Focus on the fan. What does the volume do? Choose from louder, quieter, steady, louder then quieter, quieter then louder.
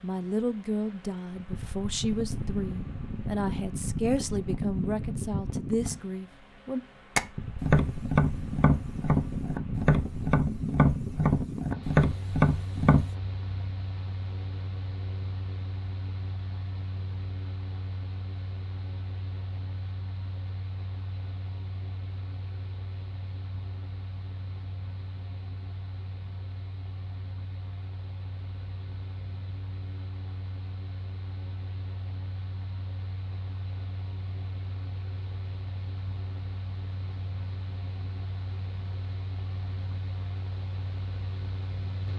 quieter.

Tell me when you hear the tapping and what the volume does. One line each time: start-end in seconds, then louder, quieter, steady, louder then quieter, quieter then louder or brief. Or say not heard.
7.2-13.1 steady.